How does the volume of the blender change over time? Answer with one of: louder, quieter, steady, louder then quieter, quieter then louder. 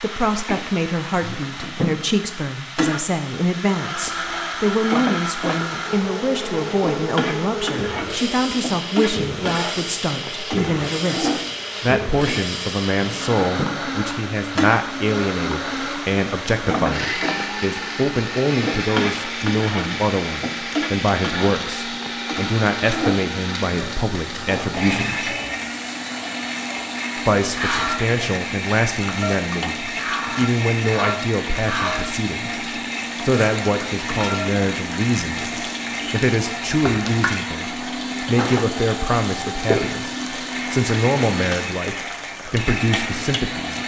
steady.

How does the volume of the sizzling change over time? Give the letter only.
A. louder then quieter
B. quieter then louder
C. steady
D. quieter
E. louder
C.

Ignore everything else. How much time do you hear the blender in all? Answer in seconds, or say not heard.
40 s.